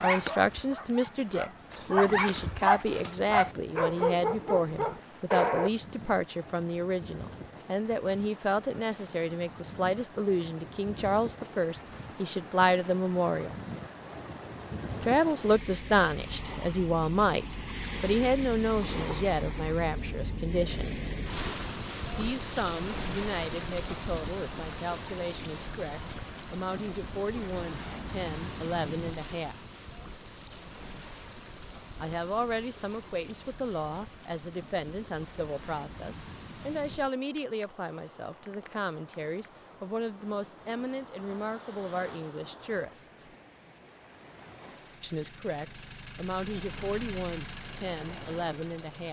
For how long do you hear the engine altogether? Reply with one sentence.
You can hear the engine for 4 seconds altogether.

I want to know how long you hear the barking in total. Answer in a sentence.
The barking can be heard for 6 seconds in total.